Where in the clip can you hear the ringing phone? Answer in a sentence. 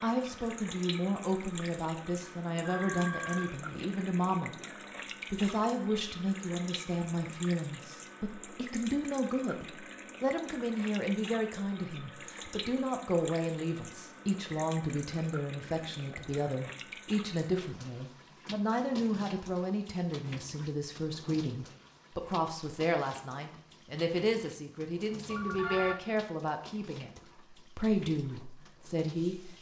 The ringing phone can be heard from 2.6 to 3.5 s and from 25.3 to 25.9 s.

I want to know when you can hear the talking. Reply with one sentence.
You can hear the talking from 0.0 to 4.6 s and from 5.2 to 29.5 s.